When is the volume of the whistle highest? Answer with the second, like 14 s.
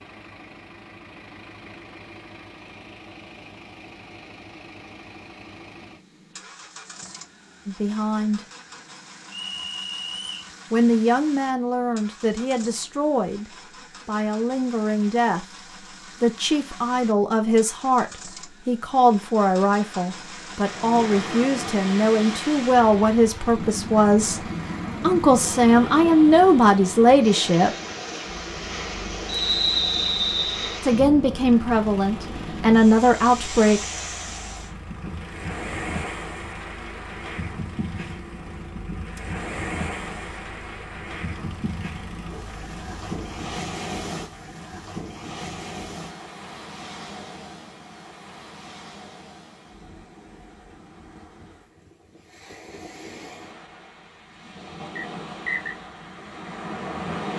30 s.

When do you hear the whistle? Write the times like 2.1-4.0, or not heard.
9.3-10.5, 29.2-30.8, 55.0-55.8.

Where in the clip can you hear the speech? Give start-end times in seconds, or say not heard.
7.7-8.4, 10.7-27.7, 30.8-33.9.